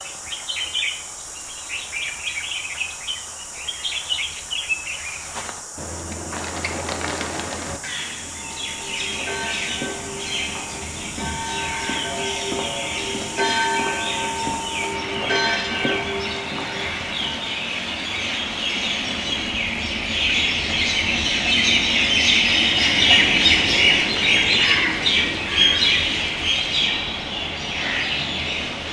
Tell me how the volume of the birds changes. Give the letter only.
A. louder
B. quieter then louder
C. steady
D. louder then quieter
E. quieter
A.